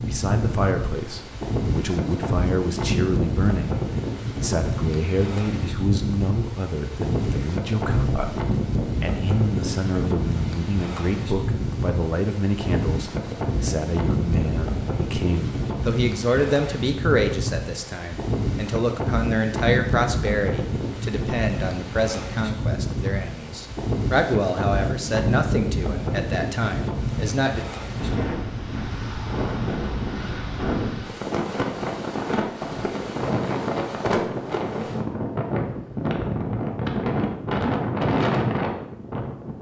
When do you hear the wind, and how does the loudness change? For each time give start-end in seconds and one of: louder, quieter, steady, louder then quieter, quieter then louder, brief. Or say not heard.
0.0-39.5 steady.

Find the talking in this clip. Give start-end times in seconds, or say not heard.
0.0-3.8, 4.4-27.6.